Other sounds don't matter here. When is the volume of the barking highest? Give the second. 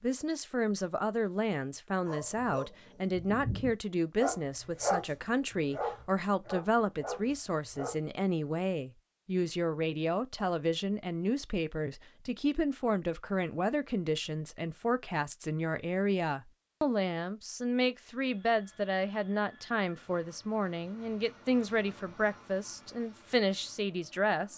5 s.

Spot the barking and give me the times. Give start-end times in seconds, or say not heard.
2.0-8.0.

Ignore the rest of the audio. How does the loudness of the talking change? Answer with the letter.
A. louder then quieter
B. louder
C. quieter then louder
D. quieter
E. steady
E.